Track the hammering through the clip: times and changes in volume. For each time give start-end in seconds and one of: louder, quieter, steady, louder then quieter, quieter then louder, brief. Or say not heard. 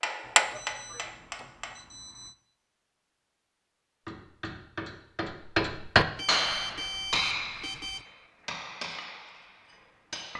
0.0-1.8 brief
4.0-10.3 louder then quieter.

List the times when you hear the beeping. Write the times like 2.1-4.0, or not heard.
0.2-2.4, 6.2-8.1.